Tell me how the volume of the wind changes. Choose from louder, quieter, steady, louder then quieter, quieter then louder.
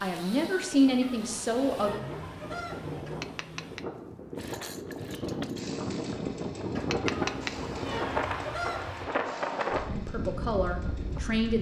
louder.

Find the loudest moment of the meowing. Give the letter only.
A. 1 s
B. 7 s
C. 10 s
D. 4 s
B.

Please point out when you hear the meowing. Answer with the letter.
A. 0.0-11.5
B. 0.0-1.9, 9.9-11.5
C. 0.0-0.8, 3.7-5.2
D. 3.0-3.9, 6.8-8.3
D.